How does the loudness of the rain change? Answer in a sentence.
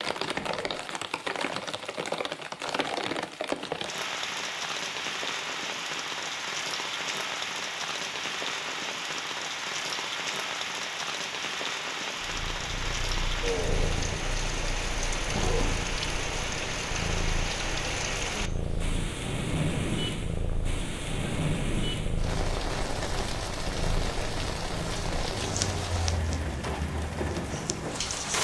The loudness of the rain stays about the same.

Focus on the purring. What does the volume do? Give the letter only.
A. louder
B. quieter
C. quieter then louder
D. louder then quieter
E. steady
E.